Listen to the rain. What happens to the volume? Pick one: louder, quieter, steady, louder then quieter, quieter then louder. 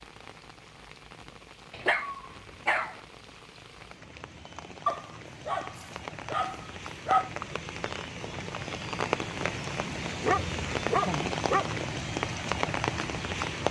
louder.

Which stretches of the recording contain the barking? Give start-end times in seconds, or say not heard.
1.7-3.0, 4.8-7.3, 10.1-11.7.